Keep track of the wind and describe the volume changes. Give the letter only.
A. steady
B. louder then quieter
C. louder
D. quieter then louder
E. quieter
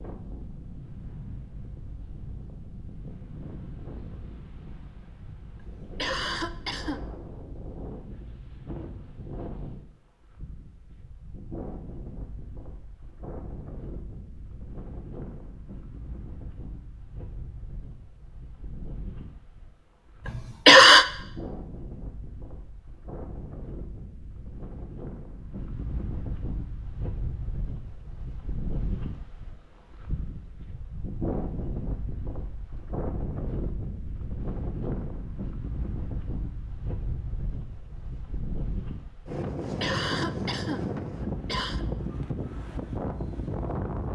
C.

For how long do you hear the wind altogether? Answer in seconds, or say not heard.
44 s.